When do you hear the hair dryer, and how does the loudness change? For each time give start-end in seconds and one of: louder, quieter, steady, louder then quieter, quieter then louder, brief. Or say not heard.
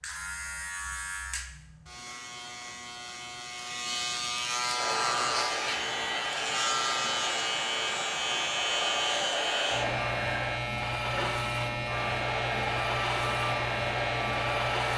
4.7-14.9 steady.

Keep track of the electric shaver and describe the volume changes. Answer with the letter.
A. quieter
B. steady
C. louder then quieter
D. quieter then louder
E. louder
E.